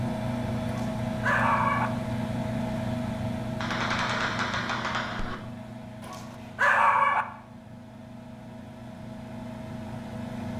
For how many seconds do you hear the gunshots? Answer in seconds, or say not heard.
2 s.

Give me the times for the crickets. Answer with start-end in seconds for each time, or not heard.
not heard.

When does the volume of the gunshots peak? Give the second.
4 s.